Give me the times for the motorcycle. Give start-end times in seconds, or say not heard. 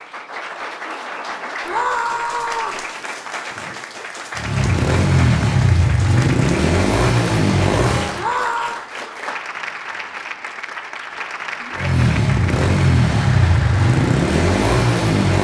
4.3-8.2, 11.8-15.3.